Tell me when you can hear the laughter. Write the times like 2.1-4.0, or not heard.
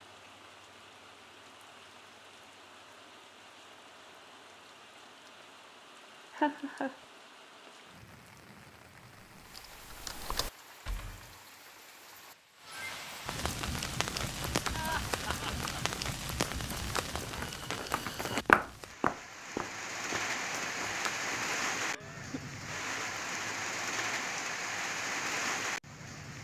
6.3-7.0, 14.7-15.6, 21.8-22.6.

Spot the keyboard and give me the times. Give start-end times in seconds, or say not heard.
9.3-11.3.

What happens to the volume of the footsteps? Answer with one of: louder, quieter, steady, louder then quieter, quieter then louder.
louder then quieter.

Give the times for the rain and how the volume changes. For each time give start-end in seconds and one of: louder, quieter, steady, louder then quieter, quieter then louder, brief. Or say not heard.
0.0-26.3 louder.